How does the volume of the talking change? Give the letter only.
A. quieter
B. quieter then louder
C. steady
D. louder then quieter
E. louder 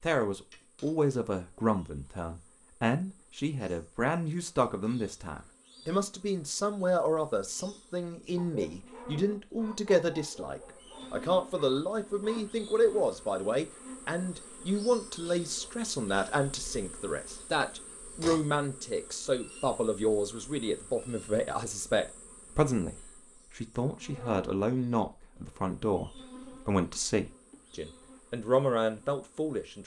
C.